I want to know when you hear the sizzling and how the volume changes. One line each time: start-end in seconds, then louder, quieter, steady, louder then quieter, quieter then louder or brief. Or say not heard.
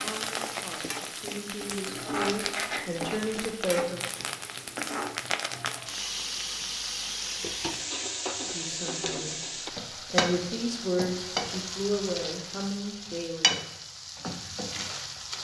0.0-15.3 steady.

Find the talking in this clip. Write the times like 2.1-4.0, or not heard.
0.0-4.0, 8.4-9.4, 10.1-13.6.